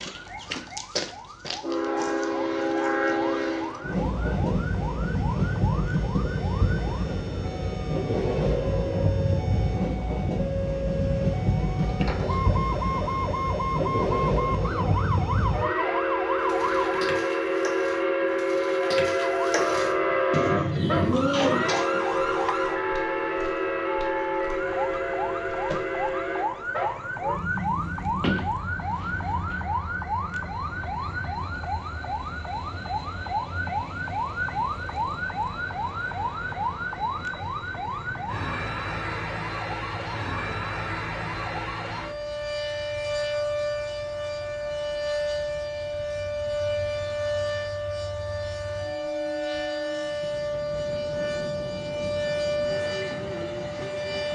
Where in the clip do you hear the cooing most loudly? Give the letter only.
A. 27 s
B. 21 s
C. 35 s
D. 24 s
B.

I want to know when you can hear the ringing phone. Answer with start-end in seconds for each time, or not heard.
not heard.